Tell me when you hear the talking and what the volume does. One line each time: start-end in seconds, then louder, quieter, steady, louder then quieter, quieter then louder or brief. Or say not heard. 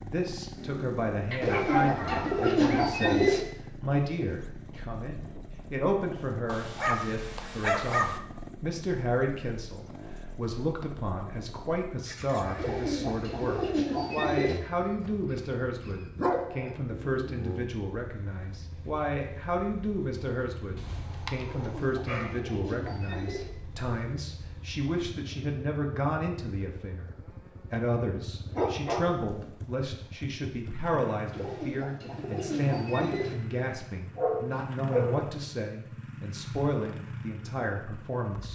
0.0-27.1 steady
27.7-38.5 steady.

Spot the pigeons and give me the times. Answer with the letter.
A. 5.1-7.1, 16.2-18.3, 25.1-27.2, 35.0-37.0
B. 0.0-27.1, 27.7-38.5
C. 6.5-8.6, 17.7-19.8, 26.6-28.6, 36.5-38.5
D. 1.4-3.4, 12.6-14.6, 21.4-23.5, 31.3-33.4
D.